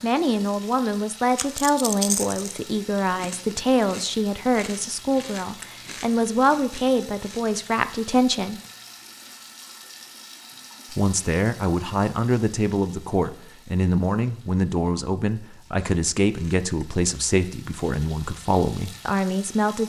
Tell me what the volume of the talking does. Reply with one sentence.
The loudness of the talking stays about the same.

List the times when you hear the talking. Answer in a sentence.
The talking can be heard from 0.0 to 8.6 s and from 10.9 to 19.8 s.